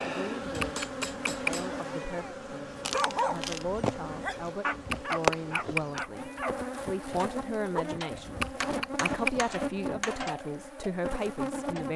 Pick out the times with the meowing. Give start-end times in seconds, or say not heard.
0.4-2.4, 4.7-6.4, 8.2-9.6.